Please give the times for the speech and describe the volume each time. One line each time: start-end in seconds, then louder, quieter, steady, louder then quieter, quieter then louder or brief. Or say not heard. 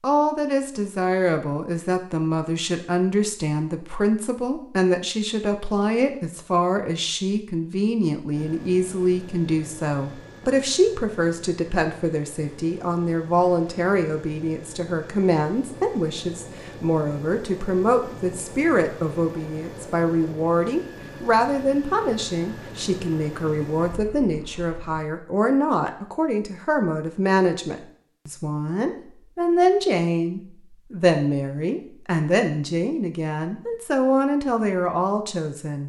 0.0-35.8 steady.